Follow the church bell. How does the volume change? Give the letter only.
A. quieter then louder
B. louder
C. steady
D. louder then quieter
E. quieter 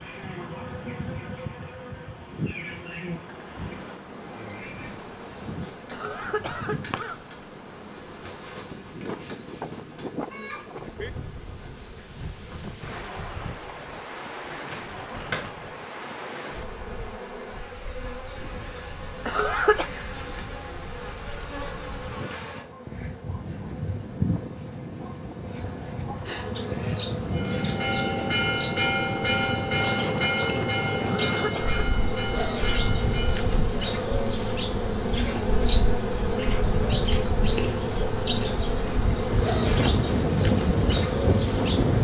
E.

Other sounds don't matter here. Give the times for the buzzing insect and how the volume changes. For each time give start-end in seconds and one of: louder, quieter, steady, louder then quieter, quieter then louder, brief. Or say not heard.
0.0-41.9 louder.